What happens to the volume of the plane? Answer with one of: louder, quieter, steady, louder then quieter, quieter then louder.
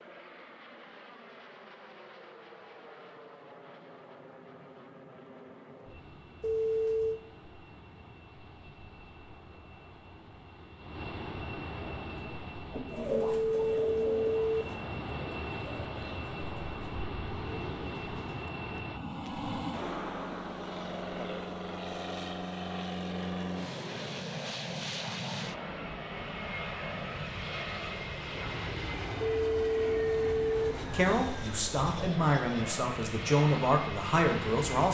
louder.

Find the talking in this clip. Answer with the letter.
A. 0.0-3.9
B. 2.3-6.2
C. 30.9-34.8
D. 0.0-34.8
C.